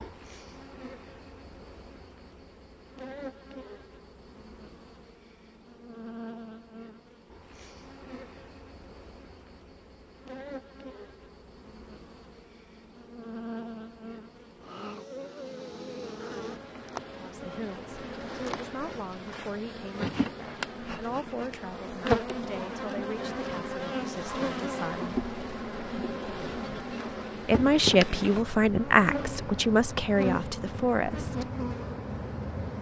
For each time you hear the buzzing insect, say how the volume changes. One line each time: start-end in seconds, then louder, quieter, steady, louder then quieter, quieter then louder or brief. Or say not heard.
0.0-32.7 louder.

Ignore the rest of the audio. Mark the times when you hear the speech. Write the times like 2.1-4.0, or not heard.
17.1-25.1, 27.4-31.5.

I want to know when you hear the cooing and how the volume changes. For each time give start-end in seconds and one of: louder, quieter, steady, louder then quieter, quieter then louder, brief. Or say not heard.
not heard.